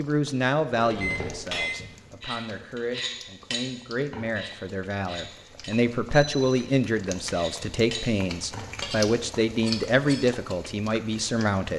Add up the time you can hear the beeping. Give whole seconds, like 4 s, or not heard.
2 s.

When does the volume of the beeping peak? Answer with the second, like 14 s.
1 s.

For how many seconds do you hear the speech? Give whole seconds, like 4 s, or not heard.
12 s.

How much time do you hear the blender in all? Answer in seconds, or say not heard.
not heard.